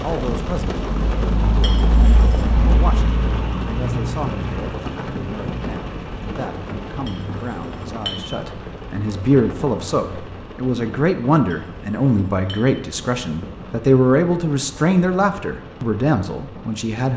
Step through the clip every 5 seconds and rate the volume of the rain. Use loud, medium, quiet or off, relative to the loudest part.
loud, medium, quiet, quiet.